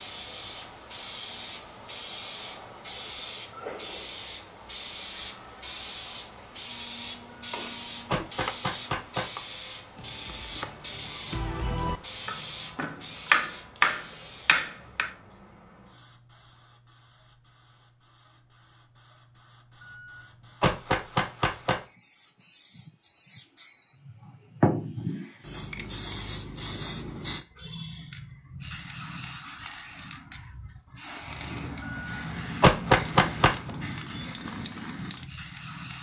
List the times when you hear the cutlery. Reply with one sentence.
The cutlery can't be heard in this clip.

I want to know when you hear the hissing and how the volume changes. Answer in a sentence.
You can hear the hissing from 0.0 to 35.9 s, getting quieter then louder.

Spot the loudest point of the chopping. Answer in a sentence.
The volume of the chopping peaks at 13 seconds.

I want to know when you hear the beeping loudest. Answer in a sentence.
The volume of the beeping peaks at 33 seconds.